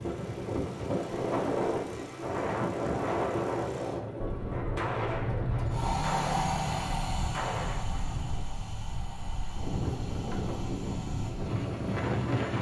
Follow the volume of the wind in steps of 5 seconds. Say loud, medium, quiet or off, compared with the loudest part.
loud, medium, loud.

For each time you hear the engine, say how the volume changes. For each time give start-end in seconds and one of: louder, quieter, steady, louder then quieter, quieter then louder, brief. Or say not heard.
0.0-12.5 louder then quieter.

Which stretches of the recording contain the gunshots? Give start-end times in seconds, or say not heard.
4.2-8.4.